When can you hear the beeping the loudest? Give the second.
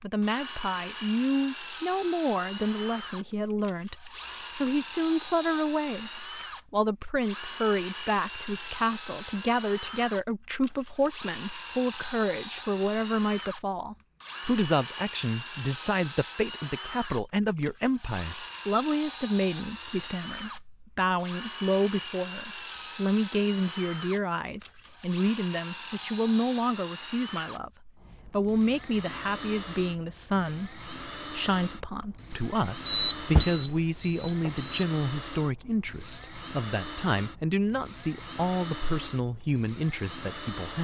33 s.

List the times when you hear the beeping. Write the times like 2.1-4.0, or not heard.
32.9-34.9.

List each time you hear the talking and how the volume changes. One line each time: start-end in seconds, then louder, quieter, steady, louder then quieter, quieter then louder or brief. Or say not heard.
0.0-40.7 steady.